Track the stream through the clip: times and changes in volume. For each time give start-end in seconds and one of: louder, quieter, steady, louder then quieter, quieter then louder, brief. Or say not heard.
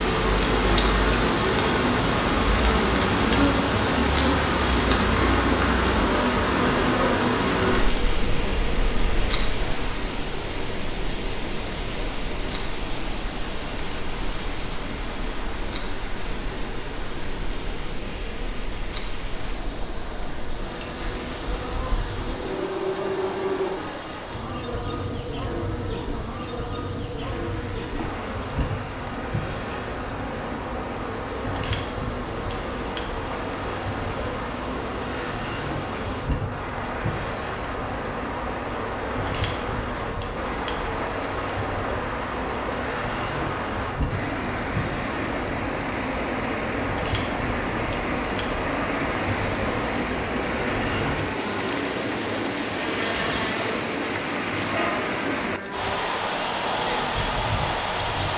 0.0-58.3 quieter then louder.